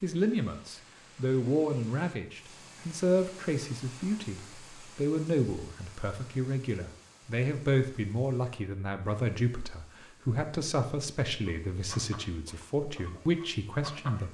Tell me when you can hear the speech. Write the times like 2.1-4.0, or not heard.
0.0-14.2.